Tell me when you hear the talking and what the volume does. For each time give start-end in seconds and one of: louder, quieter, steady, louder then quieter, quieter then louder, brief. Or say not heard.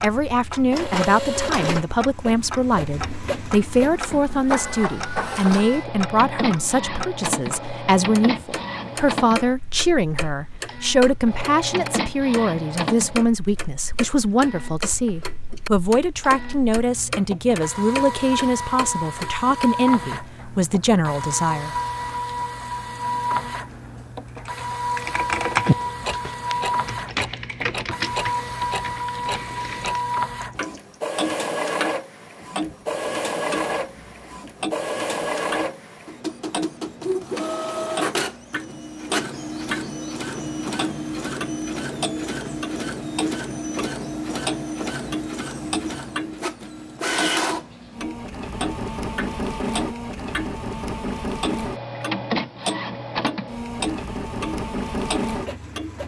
0.0-21.8 steady.